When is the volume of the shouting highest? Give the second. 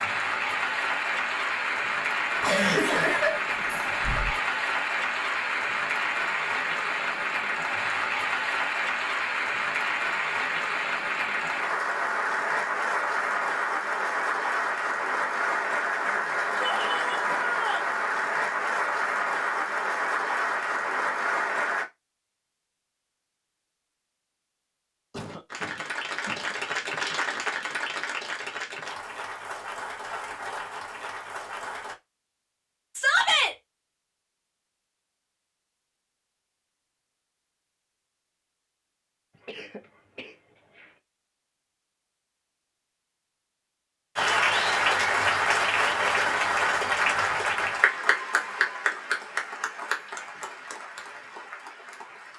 33 s.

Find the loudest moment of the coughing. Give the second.
3 s.